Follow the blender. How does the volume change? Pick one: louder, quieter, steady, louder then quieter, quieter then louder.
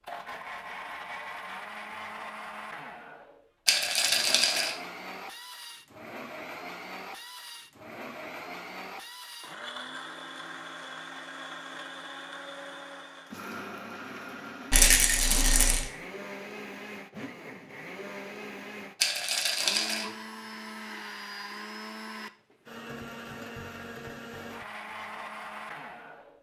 steady.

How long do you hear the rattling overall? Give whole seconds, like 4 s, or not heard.
3 s.